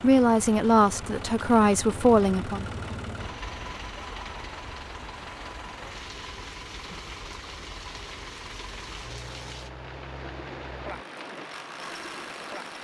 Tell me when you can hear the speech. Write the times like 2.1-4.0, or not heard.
0.0-2.6.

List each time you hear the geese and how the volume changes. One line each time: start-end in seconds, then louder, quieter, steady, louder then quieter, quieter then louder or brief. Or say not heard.
not heard.